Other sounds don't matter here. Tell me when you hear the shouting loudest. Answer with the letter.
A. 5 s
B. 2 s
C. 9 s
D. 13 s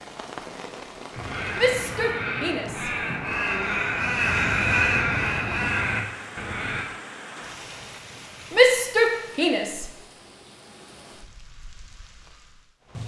C.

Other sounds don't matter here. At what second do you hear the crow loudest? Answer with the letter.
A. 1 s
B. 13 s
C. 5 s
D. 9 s
C.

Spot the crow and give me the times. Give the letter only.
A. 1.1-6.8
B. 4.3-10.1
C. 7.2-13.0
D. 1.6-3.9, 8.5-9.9
A.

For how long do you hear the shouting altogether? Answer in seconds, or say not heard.
4 s.